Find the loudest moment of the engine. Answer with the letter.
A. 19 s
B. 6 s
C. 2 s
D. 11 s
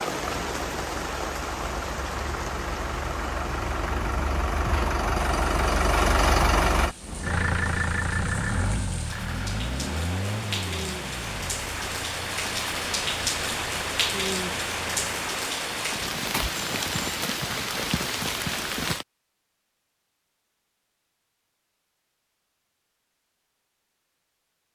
B.